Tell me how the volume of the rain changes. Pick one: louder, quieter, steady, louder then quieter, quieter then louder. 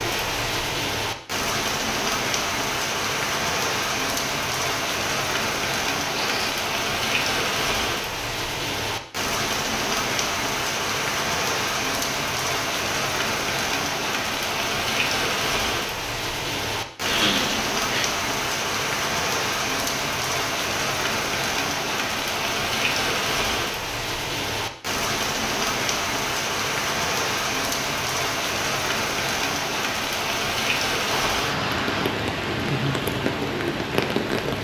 steady.